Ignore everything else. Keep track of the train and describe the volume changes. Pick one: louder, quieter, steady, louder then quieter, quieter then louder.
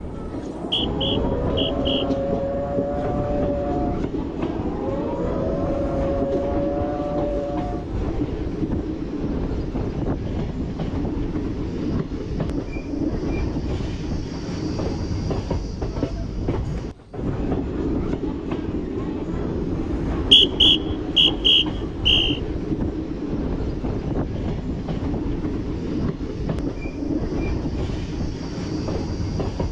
steady.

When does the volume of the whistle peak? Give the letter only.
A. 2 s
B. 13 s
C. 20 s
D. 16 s
C.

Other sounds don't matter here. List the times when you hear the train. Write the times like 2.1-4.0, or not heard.
0.0-29.6.